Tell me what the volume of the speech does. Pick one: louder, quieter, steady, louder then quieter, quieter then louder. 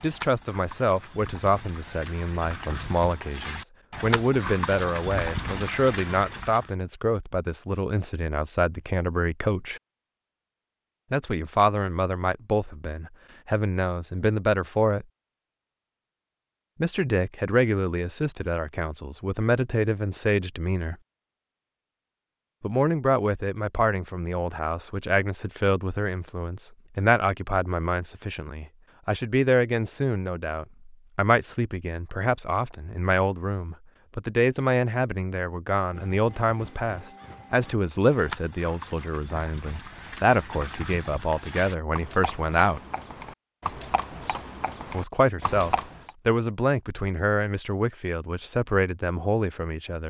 steady.